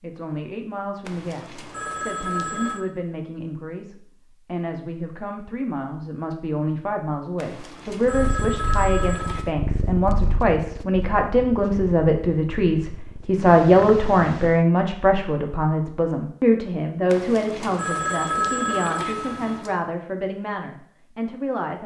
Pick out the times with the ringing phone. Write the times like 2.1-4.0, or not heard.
1.1-2.9, 7.3-9.5, 17.1-19.8.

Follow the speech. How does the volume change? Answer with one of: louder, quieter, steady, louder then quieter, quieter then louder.
louder then quieter.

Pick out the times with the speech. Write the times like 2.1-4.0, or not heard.
0.0-21.8.